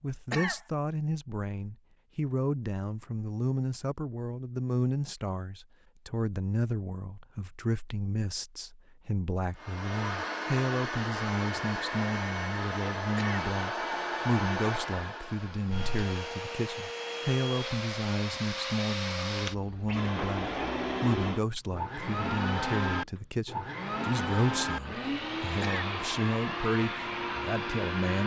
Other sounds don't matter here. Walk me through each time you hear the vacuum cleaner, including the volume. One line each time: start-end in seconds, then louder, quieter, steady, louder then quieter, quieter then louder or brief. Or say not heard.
9.6-28.2 steady.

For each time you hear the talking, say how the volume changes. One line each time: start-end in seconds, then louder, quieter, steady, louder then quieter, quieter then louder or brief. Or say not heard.
0.0-28.2 steady.